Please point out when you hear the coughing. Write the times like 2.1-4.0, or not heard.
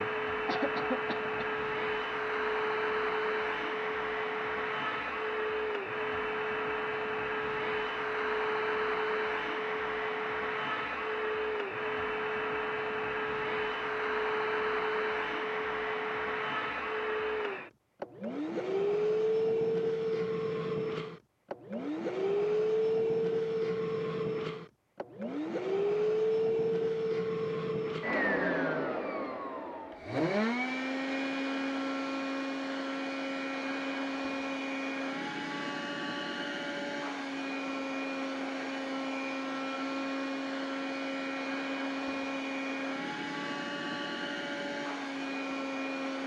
0.5-1.6.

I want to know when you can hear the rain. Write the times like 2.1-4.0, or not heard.
not heard.